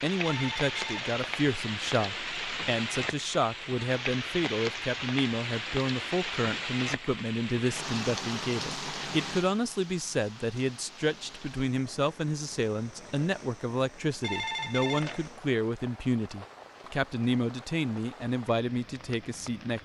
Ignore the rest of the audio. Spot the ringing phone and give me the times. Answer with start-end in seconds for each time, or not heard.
0.2-1.2, 14.2-15.3.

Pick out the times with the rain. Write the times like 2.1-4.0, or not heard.
0.0-19.7.